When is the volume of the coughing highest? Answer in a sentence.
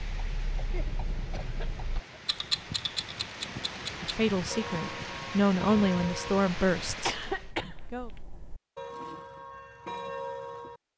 The loudest moment of the coughing is at 7 seconds.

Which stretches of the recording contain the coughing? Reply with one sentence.
You can hear the coughing from 0.6 to 2.2 s and from 7.0 to 8.2 s.